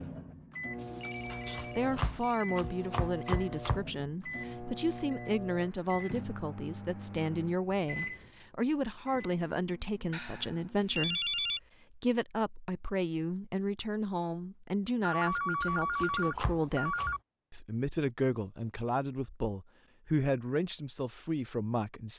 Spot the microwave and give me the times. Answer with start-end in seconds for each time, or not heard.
0.0-11.2.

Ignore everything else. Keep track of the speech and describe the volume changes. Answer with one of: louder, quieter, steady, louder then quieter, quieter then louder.
steady.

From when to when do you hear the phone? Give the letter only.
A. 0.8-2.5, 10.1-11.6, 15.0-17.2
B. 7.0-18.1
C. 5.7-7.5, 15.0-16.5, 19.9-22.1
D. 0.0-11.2
A.